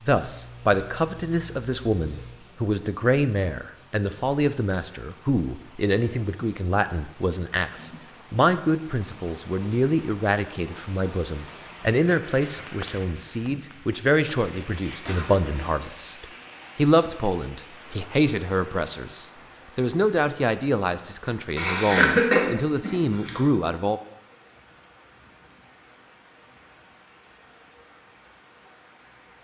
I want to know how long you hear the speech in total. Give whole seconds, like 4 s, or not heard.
24 s.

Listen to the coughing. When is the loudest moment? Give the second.
22 s.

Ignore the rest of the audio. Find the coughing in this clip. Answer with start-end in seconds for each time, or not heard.
0.2-2.4, 15.0-15.8, 21.6-23.4.